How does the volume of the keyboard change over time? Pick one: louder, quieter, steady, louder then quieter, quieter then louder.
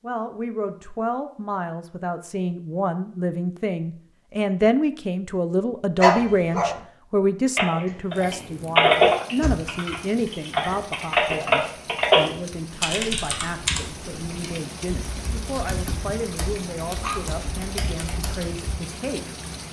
quieter.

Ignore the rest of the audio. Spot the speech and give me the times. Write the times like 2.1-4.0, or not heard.
0.0-19.4.